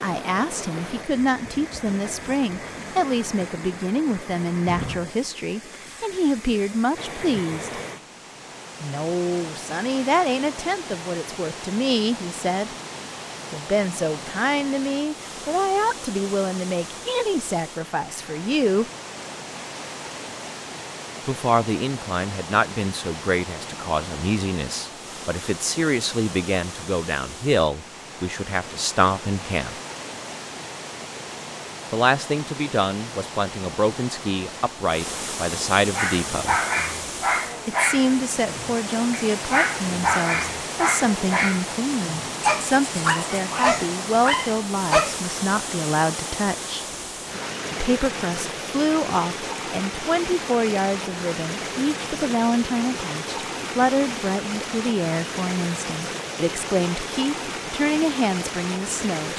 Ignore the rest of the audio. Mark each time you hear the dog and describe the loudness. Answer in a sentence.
The dog can be heard from 36.0 to 45.3 s, at a steady volume.